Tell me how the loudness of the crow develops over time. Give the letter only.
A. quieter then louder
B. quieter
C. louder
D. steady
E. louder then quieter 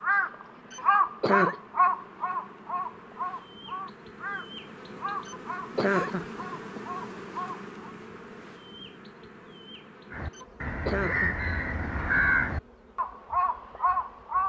A.